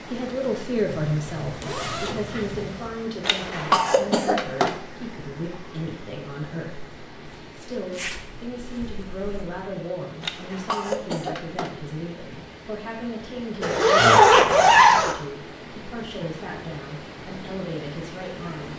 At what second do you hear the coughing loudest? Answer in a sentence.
The volume of the coughing peaks at 4 seconds.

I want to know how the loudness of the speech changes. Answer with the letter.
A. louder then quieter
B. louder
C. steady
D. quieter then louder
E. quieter
E.